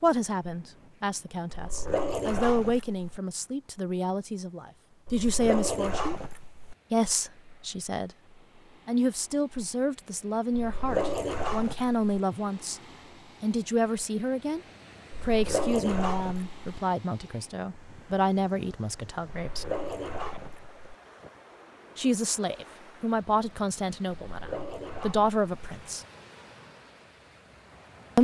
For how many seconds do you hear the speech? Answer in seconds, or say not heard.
21 s.